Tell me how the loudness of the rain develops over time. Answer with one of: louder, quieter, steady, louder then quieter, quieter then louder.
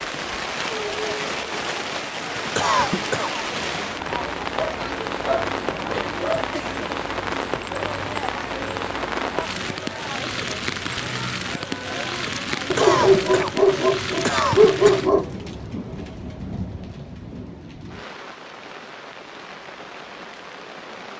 quieter.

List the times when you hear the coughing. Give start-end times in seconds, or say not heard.
2.5-3.5, 12.8-15.1.